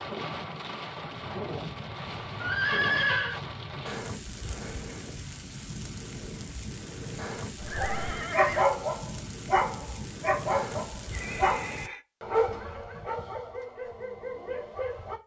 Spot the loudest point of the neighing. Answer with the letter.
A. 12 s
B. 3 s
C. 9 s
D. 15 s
B.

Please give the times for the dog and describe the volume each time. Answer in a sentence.
The dog can be heard from 7.5 to 15.2 s, getting quieter.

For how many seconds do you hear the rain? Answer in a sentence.
The rain can be heard for 12 seconds in total.